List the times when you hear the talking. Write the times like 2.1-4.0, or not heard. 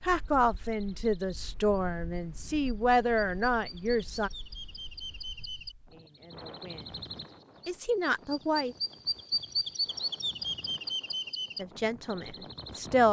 0.0-4.3, 5.9-7.0, 7.7-8.8, 11.6-13.0.